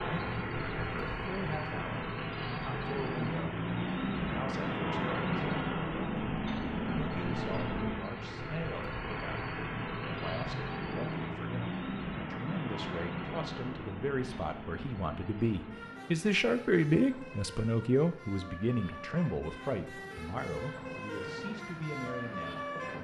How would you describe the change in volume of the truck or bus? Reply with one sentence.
The volume of the truck or bus goes down.